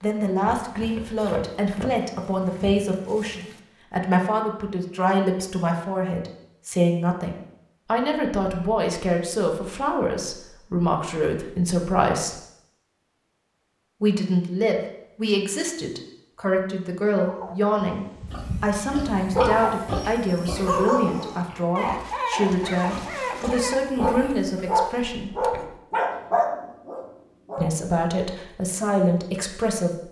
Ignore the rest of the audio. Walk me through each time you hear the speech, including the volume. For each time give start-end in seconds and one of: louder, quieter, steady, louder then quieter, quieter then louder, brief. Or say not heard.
0.0-12.3 steady
14.0-25.3 steady
27.6-30.0 brief.